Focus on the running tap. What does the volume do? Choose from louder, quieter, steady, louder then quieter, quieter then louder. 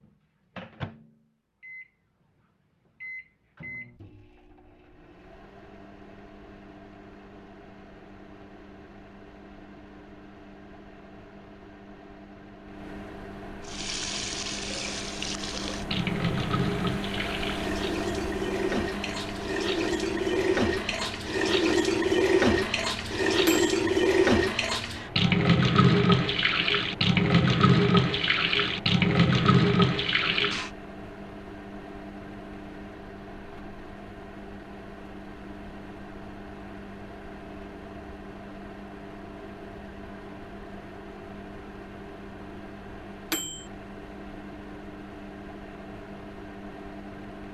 louder.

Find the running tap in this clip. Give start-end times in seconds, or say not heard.
13.6-30.7.